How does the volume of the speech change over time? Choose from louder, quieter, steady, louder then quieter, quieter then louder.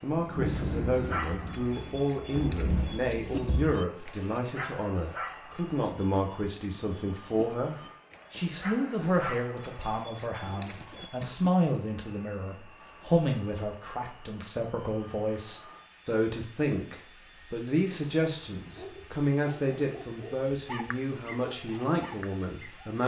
steady.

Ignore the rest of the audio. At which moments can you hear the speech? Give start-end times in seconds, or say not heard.
0.0-23.0.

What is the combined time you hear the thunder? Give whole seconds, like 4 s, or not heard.
4 s.